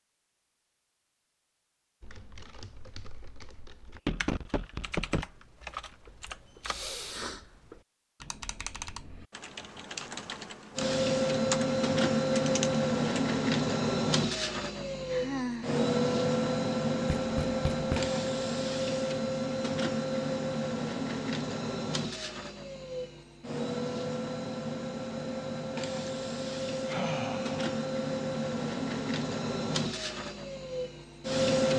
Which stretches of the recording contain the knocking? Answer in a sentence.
You can hear the knocking from 4.0 to 5.2 s and from 17.1 to 18.1 s.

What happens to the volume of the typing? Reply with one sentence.
The volume of the typing goes up.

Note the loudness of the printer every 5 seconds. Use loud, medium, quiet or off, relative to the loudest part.
off, off, loud, loud, medium, medium, loud.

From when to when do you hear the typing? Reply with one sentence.
The typing can be heard from 2.0 to 13.2 s.